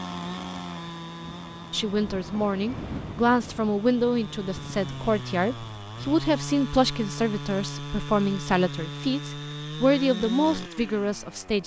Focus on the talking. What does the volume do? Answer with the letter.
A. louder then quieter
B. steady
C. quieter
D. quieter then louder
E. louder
B.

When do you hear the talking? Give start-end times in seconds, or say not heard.
1.7-11.6.